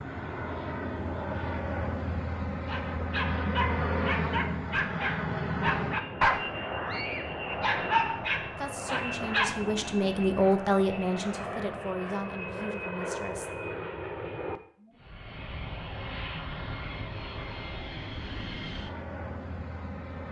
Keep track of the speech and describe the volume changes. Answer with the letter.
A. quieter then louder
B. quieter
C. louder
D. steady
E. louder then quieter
E.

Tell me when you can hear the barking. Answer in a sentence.
You can hear the barking from 2.6 to 9.6 s.